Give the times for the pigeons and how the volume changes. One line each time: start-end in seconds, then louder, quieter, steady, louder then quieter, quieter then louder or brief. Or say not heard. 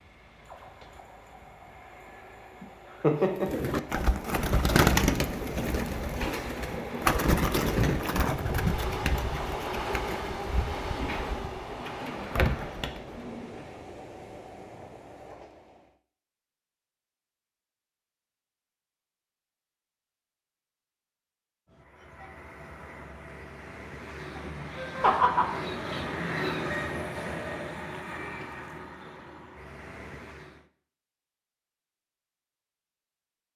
3.3-13.8 quieter.